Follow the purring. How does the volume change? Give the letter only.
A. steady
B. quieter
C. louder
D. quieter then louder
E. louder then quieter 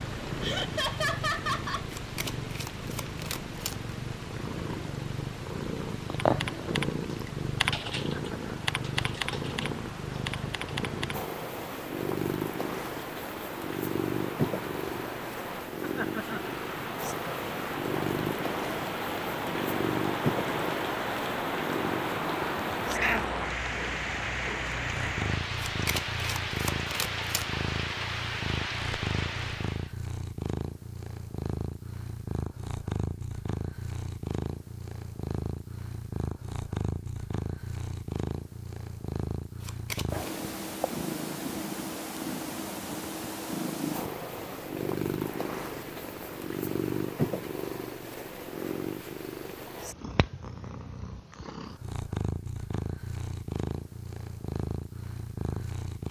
A.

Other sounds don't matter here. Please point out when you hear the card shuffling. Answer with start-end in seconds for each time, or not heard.
1.9-4.0, 25.6-27.5, 39.6-40.3.